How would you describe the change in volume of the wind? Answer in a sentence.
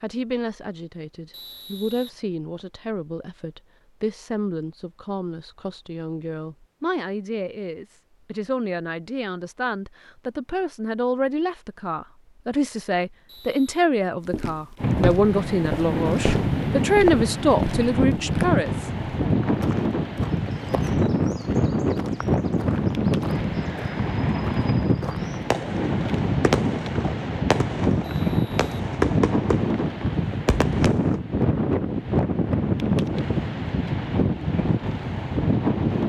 The volume of the wind stays about the same.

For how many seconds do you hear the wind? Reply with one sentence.
You can hear the wind for 21 seconds altogether.